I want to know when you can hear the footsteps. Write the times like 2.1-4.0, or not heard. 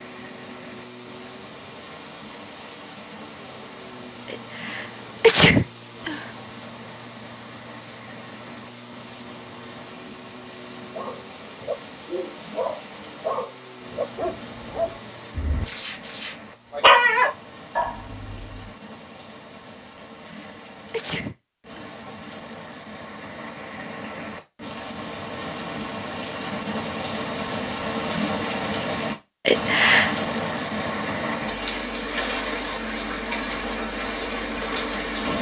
not heard.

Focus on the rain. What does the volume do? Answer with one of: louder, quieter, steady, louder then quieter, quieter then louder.
louder.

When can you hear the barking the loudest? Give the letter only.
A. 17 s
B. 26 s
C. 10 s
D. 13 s
A.